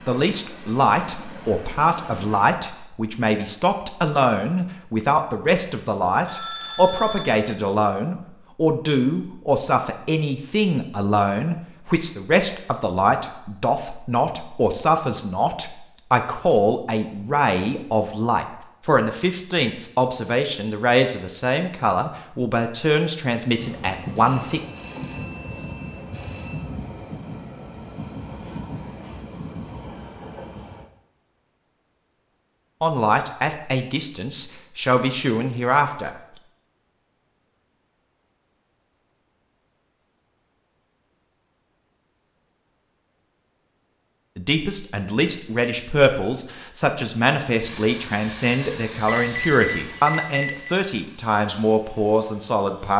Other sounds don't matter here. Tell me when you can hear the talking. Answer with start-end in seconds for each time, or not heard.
0.1-24.6, 32.8-36.1, 44.4-52.9.